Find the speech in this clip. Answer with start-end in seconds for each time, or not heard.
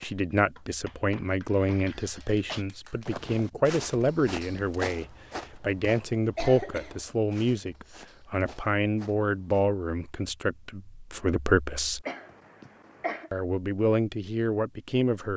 0.0-12.1, 13.3-15.3.